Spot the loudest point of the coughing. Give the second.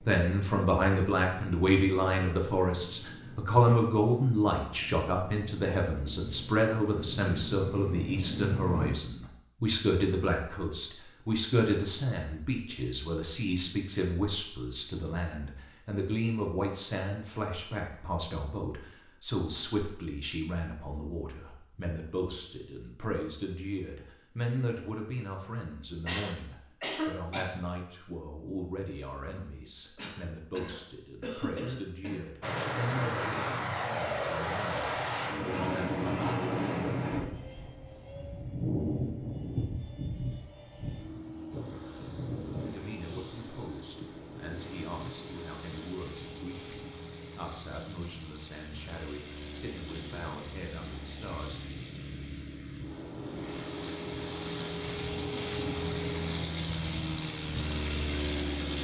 27 s.